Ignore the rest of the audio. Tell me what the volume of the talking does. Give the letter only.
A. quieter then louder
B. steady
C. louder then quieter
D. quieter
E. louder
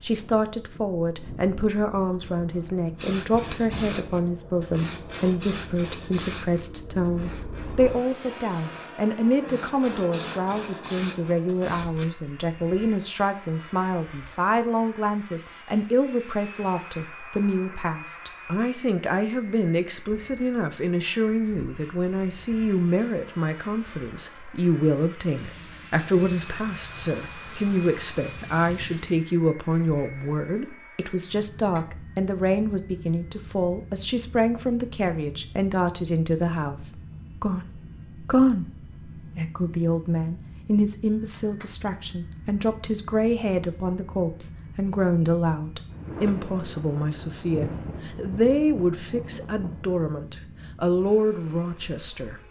B.